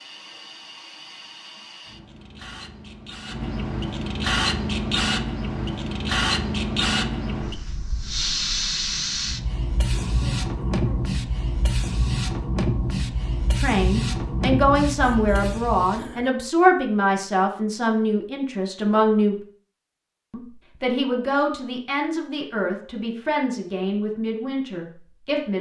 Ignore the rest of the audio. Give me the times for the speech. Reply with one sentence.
The speech can be heard from 13.6 to 19.4 s and from 20.3 to 25.5 s.